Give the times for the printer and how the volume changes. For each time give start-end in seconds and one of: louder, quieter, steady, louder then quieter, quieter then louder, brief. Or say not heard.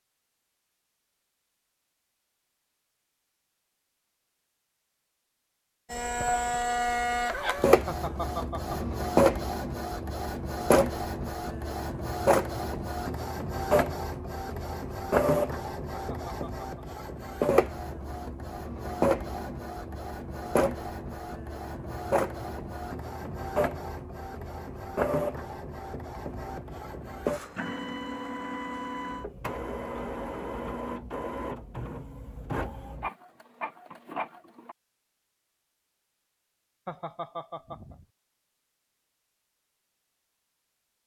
5.9-34.8 quieter.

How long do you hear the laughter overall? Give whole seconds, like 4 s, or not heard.
3 s.